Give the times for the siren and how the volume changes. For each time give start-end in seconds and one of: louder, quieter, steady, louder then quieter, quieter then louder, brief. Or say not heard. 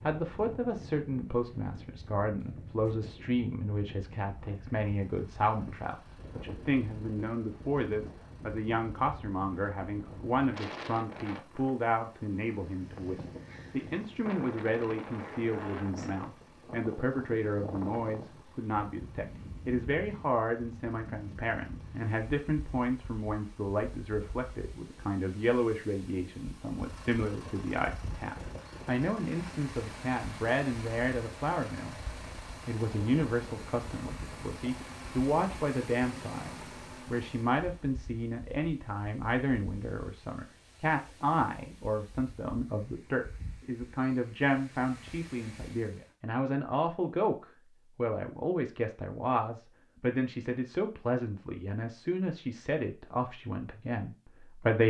not heard.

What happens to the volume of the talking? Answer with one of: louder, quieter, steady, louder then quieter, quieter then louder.
steady.